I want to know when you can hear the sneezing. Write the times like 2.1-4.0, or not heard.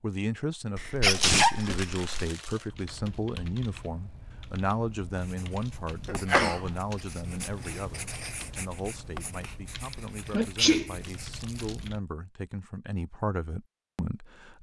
0.8-2.3, 6.0-6.8, 9.9-10.9.